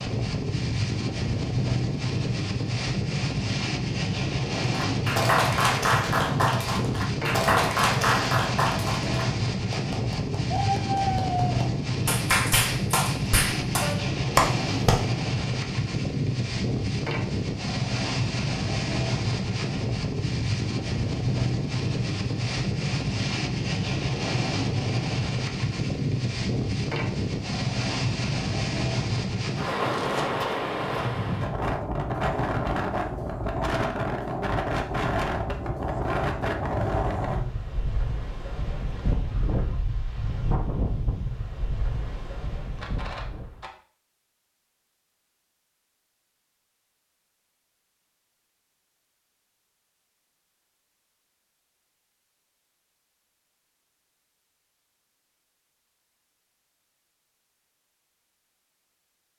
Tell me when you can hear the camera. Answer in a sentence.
You can hear the camera from 42.8 to 43.7 s.